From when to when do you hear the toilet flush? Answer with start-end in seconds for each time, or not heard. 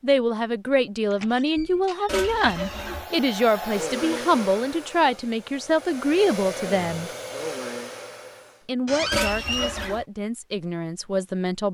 2.0-3.1, 9.1-10.1.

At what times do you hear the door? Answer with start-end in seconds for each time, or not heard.
1.1-3.0, 8.8-9.9.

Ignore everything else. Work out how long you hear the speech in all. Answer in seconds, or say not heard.
10 s.